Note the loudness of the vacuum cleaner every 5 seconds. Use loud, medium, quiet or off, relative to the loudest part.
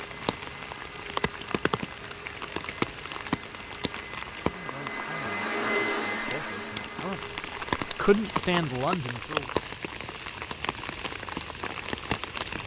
medium, loud, off.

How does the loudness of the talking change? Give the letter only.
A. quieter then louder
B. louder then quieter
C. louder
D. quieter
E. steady
C.